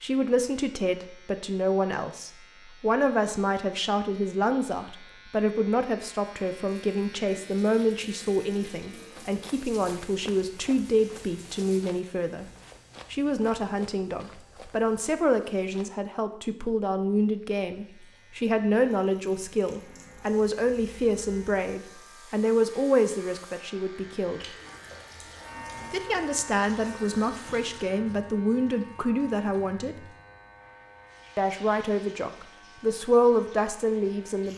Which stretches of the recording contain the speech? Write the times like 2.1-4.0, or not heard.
0.0-12.4, 13.1-24.6, 25.9-30.1, 31.4-34.5.